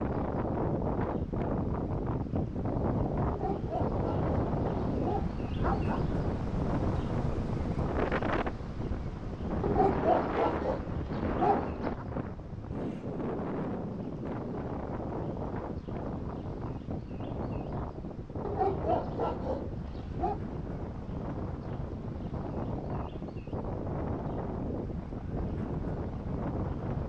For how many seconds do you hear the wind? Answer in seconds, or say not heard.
27 s.